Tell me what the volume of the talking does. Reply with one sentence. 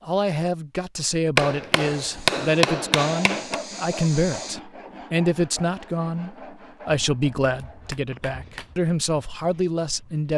The volume of the talking stays about the same.